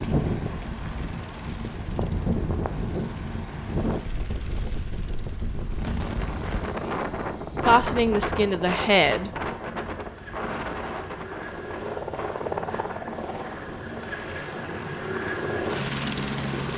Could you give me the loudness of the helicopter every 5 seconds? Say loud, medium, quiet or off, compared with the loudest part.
quiet, quiet, medium, loud.